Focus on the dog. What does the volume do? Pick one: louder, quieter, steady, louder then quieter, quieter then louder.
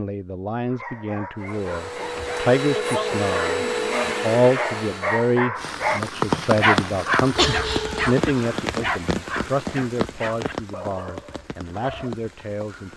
louder then quieter.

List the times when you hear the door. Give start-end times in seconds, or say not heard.
not heard.